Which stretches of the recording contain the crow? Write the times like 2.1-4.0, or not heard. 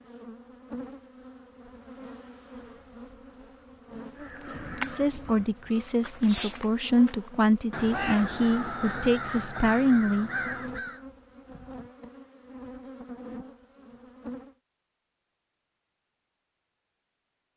4.2-11.0.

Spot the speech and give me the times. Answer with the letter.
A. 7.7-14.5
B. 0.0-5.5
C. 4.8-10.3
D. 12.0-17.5
C.